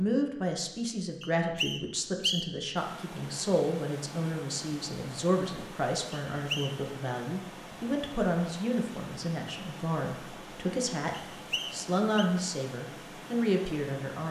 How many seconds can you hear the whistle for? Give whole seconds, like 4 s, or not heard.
3 s.